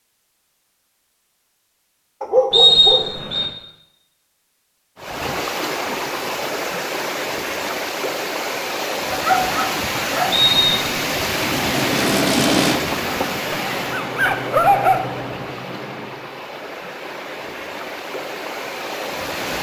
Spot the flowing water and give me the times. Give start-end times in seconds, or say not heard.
5.0-19.5.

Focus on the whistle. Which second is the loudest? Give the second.
3 s.